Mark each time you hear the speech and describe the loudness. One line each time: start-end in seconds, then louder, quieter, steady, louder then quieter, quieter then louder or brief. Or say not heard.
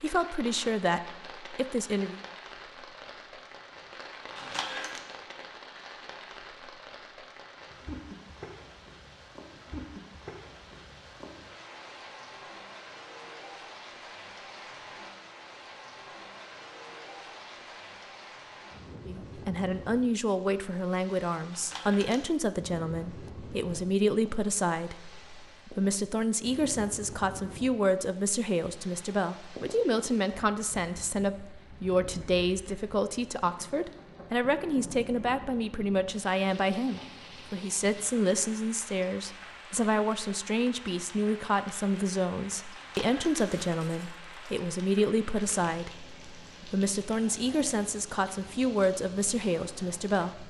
0.0-2.2 brief
19.1-50.4 steady.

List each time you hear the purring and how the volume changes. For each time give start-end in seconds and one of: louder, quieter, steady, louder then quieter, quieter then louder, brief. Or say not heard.
not heard.